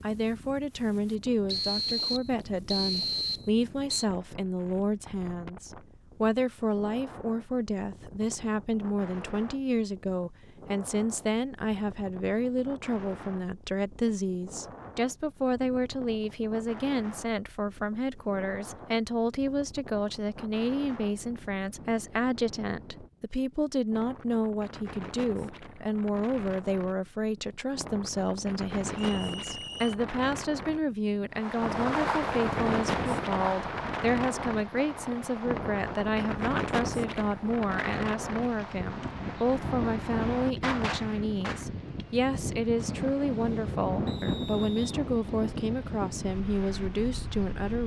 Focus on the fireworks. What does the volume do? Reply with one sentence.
The loudness of the fireworks goes down, then up.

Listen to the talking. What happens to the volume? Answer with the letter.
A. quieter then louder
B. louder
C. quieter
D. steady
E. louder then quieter
D.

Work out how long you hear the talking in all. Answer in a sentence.
You can hear the talking for 48 seconds altogether.